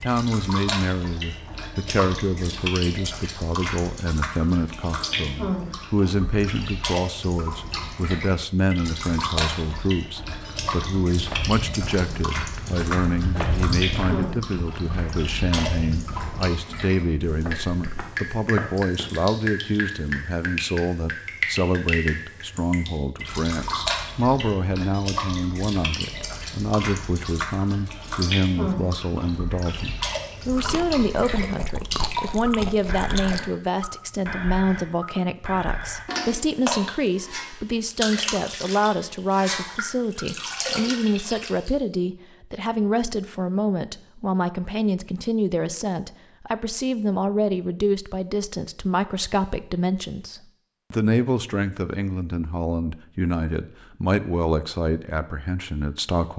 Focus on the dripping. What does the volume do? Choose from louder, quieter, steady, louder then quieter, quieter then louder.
steady.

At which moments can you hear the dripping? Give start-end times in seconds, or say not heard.
0.0-41.7.